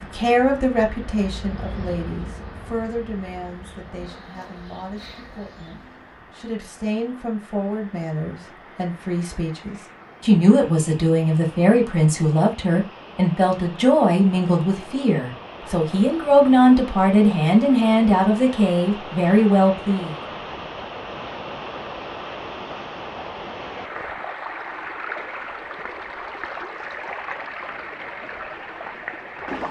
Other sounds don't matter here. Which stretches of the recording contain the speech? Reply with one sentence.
You can hear the speech from 0.0 to 20.1 s.